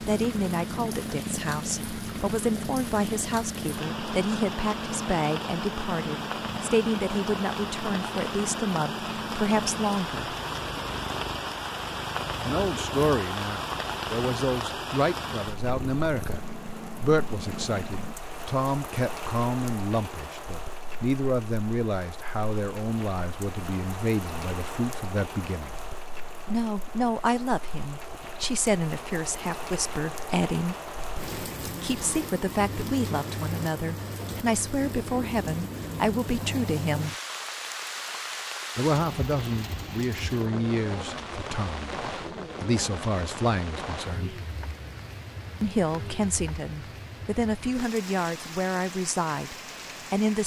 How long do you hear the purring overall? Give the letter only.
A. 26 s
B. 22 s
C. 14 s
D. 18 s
D.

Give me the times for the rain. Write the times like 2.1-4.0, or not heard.
0.0-50.4.